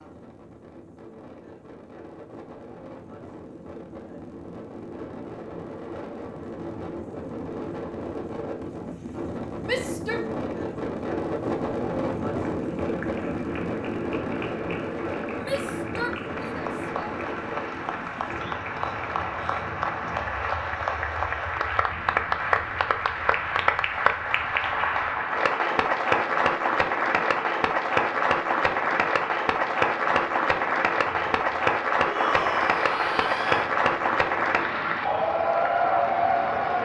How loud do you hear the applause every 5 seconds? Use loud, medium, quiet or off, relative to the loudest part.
off, off, quiet, medium, loud, loud, loud, loud.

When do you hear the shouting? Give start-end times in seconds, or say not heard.
9.7-10.2, 15.4-17.0, 32.0-33.7.